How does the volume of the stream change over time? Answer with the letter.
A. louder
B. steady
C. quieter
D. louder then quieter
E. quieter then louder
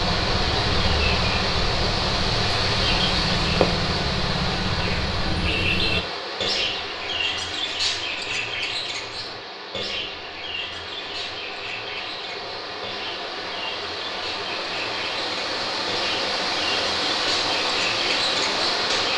E.